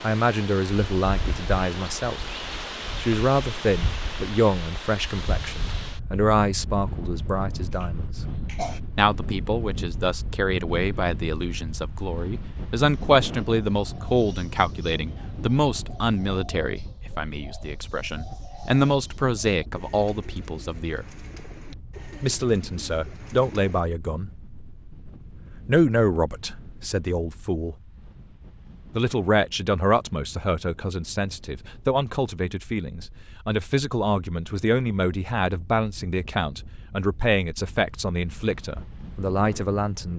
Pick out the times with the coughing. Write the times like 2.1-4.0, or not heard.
7.7-8.8.